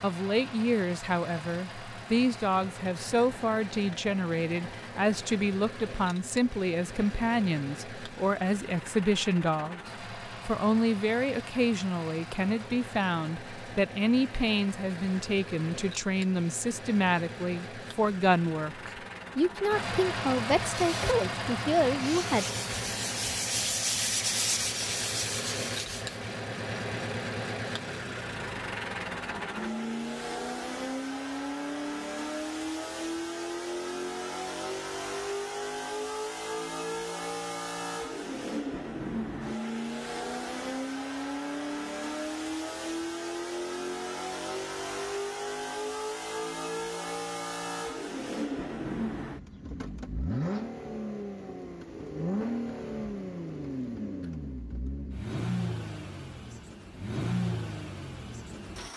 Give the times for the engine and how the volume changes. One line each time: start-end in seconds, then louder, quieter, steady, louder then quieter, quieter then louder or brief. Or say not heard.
0.0-58.9 louder.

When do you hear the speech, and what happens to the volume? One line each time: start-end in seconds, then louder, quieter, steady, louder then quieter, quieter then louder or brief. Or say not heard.
0.0-22.4 steady.